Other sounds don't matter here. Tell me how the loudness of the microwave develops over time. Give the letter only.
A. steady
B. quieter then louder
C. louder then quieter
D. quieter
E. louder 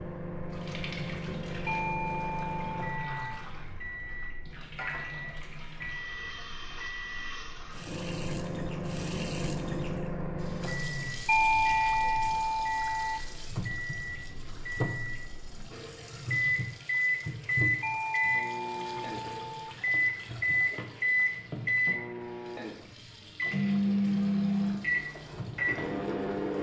E.